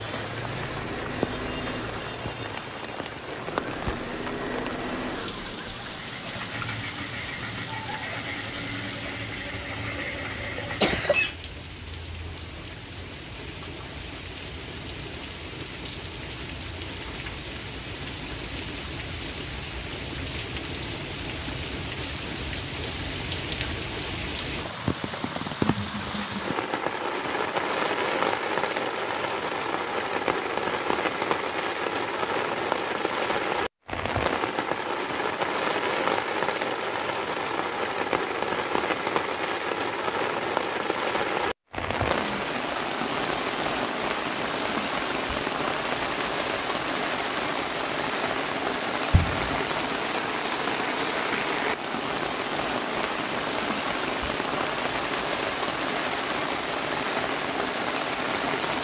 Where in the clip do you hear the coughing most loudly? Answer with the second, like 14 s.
11 s.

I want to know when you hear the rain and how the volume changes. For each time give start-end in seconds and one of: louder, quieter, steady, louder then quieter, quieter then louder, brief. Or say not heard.
0.0-58.7 louder.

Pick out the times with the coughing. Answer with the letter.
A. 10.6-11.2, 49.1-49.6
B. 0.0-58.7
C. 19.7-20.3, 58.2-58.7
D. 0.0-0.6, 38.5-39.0
A.